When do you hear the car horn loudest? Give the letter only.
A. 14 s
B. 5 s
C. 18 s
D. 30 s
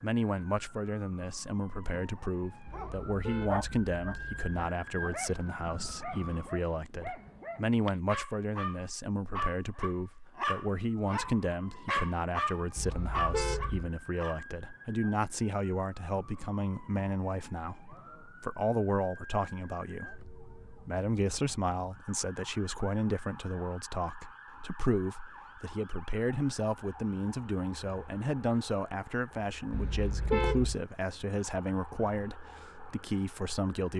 D.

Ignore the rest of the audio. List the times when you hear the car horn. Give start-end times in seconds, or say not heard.
2.6-4.5, 12.8-13.9, 29.7-30.8.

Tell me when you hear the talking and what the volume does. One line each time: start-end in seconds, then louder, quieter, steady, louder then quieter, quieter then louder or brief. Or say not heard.
0.0-33.9 steady.